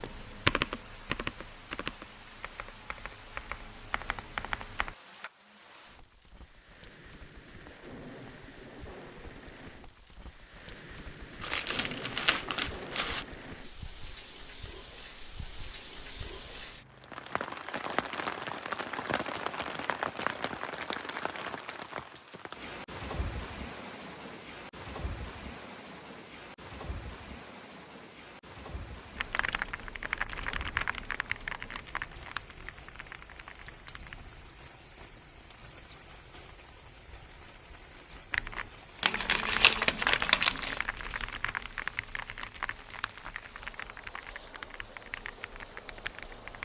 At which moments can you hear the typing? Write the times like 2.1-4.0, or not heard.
0.0-5.0, 29.1-34.3, 38.3-46.6.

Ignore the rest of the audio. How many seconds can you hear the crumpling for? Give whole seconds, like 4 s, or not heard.
4 s.